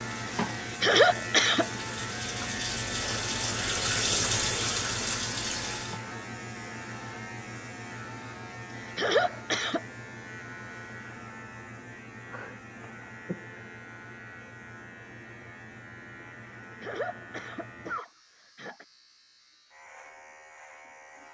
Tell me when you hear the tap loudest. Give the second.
4 s.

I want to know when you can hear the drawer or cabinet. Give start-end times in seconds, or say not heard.
not heard.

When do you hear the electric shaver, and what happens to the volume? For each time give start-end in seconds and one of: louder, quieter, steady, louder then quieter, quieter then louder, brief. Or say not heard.
0.0-21.2 quieter.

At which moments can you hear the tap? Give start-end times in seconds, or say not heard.
0.0-6.0.